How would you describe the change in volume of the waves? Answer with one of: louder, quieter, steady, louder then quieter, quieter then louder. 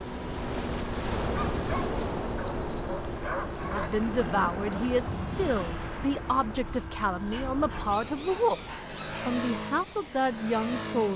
quieter.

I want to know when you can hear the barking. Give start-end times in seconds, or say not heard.
1.4-4.0, 7.3-9.2.